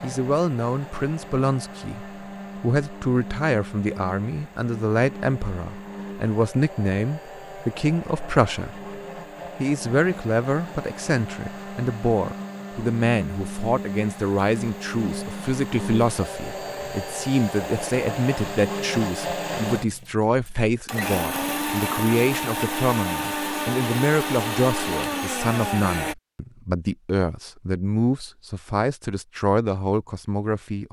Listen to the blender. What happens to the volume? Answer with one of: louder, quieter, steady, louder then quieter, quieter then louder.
louder.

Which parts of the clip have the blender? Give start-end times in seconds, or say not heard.
0.0-26.1.